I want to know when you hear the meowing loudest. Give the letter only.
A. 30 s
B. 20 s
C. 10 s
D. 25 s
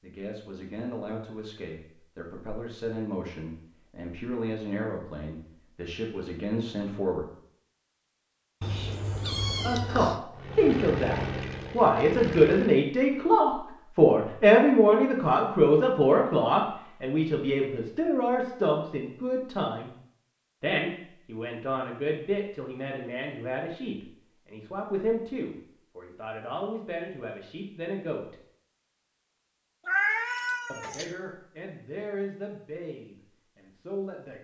A.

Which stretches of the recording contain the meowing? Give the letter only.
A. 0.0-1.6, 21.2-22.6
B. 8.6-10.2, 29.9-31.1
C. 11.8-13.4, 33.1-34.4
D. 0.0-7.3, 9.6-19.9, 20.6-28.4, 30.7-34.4
B.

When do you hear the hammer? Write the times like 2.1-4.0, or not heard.
not heard.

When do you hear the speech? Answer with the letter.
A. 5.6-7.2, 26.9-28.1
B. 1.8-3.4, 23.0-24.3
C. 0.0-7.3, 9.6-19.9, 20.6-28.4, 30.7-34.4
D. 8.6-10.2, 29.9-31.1
C.